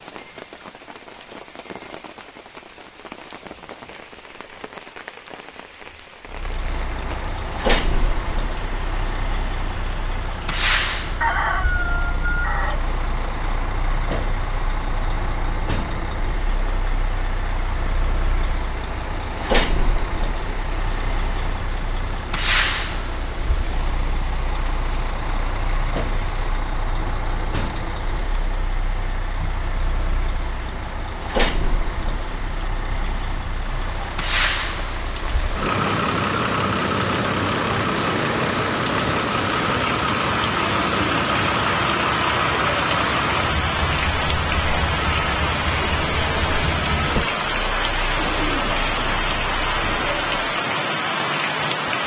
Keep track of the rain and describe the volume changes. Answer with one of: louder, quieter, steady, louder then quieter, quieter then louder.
louder.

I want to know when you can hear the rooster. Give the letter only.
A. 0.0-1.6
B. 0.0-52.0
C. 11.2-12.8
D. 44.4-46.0
C.